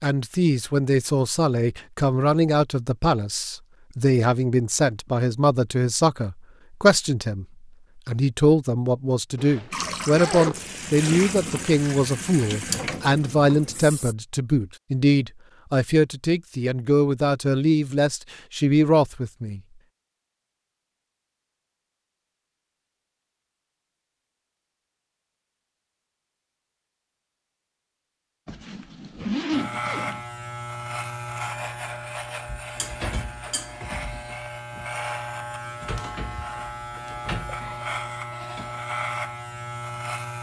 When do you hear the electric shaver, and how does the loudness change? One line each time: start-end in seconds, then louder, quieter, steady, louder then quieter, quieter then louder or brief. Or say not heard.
29.5-40.3 steady.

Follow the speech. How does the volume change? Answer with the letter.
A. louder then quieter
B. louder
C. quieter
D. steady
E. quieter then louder
D.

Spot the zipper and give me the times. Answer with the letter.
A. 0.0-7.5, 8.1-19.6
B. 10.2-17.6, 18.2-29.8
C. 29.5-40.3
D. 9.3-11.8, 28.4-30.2
D.